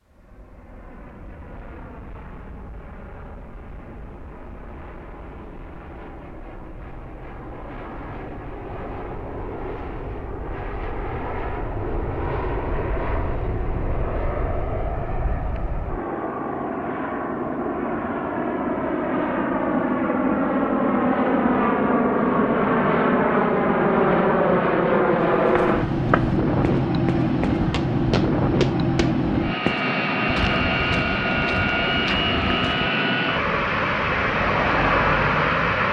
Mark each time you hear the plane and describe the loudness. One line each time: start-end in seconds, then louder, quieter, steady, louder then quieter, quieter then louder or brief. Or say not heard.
0.0-35.8 louder.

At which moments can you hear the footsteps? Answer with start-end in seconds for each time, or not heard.
25.3-32.9.